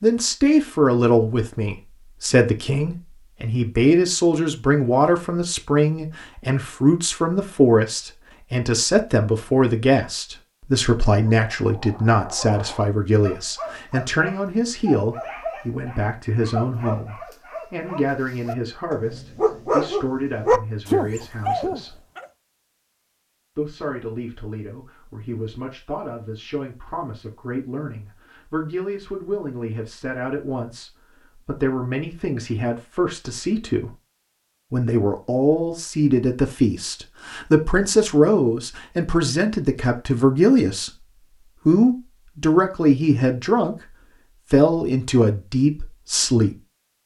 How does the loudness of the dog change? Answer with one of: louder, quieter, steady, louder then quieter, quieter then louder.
louder.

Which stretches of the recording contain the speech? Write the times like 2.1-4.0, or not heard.
0.0-22.0, 23.6-33.9, 34.7-43.8, 44.5-46.6.